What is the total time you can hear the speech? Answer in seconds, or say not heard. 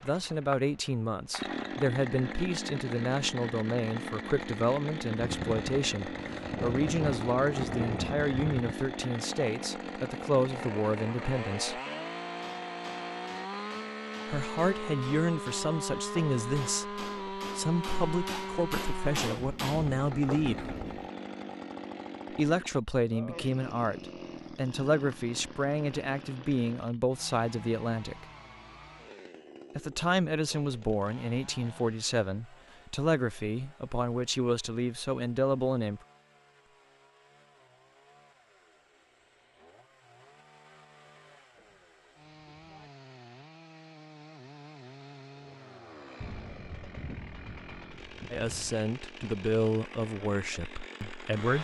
34 s.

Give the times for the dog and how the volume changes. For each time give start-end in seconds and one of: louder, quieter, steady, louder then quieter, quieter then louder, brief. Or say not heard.
not heard.